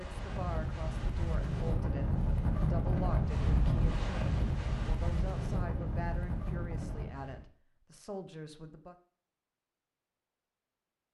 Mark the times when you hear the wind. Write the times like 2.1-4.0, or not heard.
0.0-7.5.